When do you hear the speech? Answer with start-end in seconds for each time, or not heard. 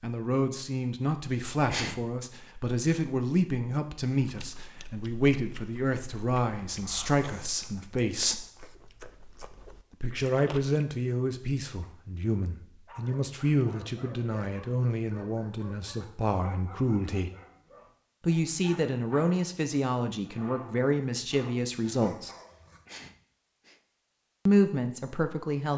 0.0-8.4, 10.0-17.3, 18.2-22.3, 24.4-25.7.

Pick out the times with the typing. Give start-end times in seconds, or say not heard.
not heard.